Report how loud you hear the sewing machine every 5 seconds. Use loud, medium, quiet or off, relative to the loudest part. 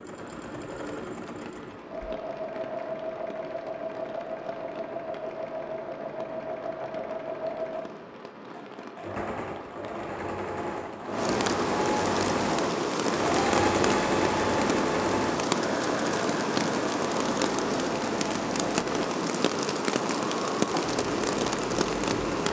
medium, medium, loud, medium, medium.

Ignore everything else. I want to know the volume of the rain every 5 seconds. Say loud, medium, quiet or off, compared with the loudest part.
quiet, quiet, loud, loud, loud.